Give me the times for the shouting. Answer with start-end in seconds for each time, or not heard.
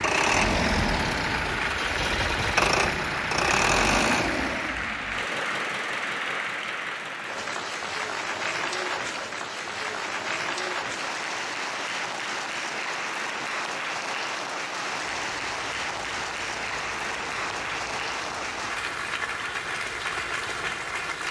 not heard.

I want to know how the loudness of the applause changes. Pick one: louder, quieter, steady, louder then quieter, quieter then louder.
steady.